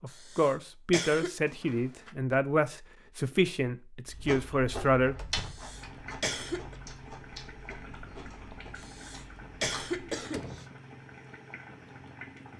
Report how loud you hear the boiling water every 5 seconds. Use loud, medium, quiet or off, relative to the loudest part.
off, loud, loud.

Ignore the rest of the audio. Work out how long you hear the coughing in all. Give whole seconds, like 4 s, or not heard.
5 s.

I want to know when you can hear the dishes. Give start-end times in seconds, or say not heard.
not heard.